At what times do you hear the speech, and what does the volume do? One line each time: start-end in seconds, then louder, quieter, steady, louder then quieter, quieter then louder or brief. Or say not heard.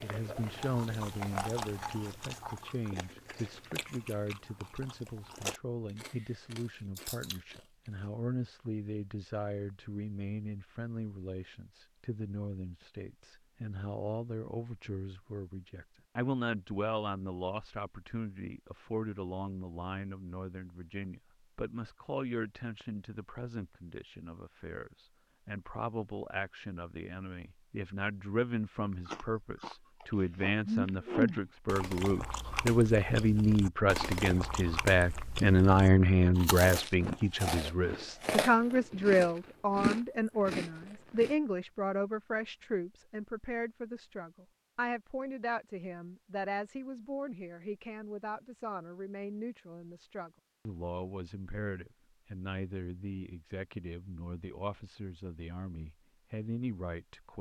0.0-57.3 louder then quieter.